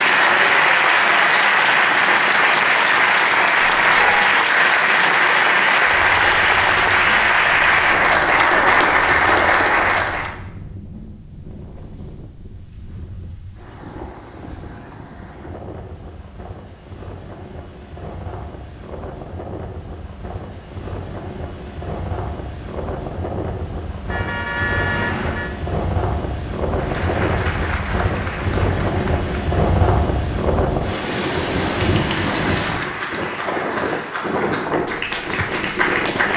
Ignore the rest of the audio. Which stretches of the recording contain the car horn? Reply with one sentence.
The car horn can be heard from 3.6 to 4.3 s and from 24.1 to 25.6 s.